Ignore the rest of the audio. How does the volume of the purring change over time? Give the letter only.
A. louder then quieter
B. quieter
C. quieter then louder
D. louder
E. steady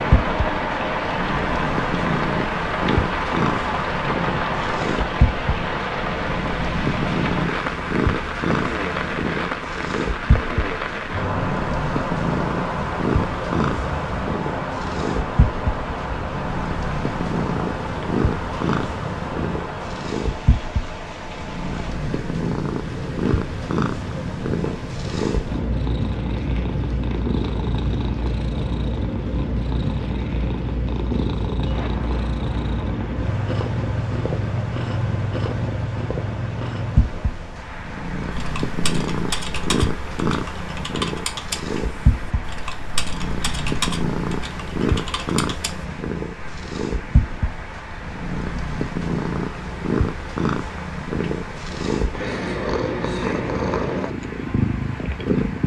E.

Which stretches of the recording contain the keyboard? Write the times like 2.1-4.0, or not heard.
38.3-45.9.